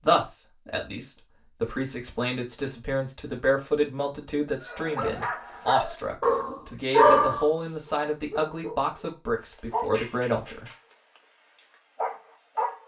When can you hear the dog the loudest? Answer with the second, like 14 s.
7 s.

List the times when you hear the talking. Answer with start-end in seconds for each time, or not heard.
0.0-10.7.